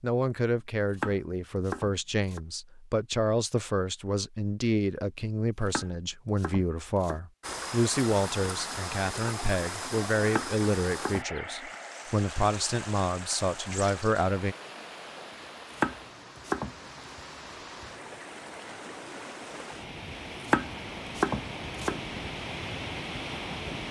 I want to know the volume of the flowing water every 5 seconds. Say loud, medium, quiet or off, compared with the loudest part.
off, loud, loud, medium, loud.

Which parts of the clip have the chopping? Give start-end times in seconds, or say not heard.
1.0-2.4, 5.7-7.2, 10.3-11.2, 15.8-16.8, 20.5-21.9.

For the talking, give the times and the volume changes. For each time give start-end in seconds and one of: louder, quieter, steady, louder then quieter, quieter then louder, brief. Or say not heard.
0.0-14.6 steady.